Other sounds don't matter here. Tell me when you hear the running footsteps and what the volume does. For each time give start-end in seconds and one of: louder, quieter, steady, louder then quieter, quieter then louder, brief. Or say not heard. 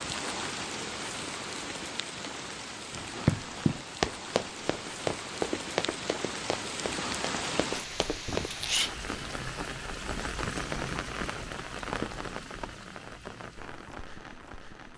2.9-8.5 quieter.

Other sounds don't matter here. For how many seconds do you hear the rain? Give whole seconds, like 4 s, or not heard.
15 s.